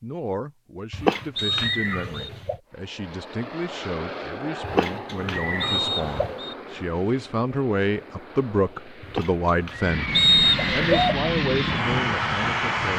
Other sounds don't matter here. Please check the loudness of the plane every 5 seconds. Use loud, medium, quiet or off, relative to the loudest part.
medium, quiet, loud.